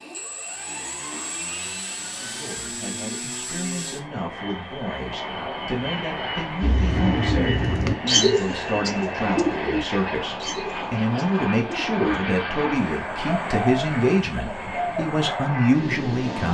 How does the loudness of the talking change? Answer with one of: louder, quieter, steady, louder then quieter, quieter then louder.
louder.